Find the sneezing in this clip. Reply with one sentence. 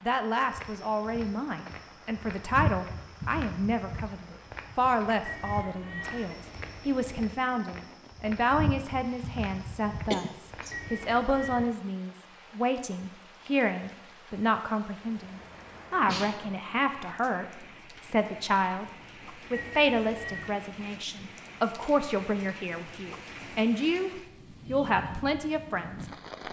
You can hear the sneezing from 10.1 to 10.8 s and from 15.9 to 16.4 s.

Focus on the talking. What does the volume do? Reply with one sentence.
The volume of the talking stays about the same.